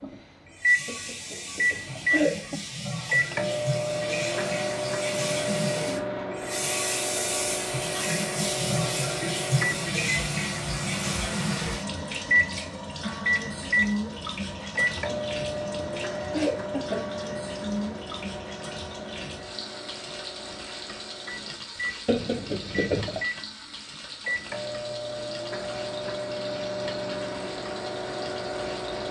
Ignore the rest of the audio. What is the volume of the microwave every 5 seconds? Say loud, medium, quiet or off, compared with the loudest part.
loud, loud, loud, medium, medium, medium.